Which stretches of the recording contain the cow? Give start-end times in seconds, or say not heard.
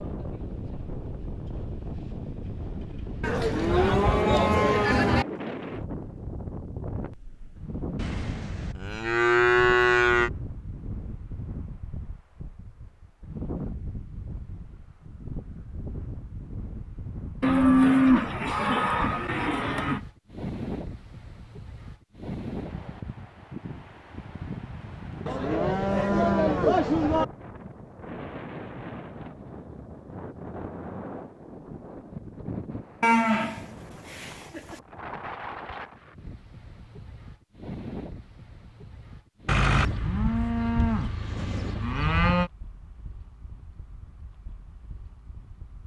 3.2-5.2, 8.0-10.3, 17.4-20.0, 25.2-27.2, 33.0-34.8, 39.5-42.5.